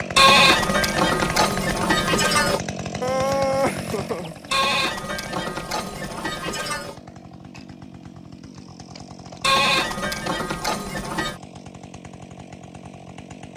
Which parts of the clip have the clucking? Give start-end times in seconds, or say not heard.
3.0-4.5.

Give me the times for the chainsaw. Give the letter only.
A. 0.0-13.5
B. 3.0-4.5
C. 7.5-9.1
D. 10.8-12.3
A.